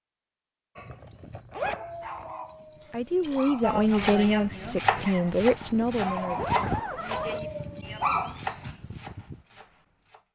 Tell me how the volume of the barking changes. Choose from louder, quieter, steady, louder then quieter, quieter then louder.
louder.